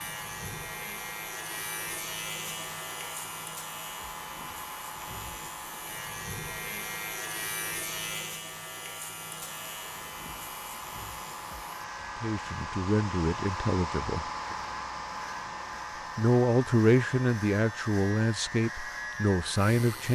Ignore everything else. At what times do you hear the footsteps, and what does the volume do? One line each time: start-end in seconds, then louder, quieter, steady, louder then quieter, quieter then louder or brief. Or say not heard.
not heard.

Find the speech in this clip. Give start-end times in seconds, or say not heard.
12.2-14.2, 16.1-20.0.